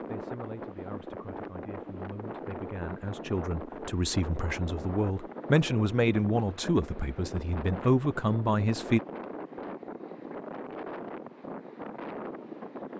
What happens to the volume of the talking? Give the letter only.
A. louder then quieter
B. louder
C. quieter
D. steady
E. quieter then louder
B.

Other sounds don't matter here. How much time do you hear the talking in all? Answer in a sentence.
You can hear the talking for 9 seconds altogether.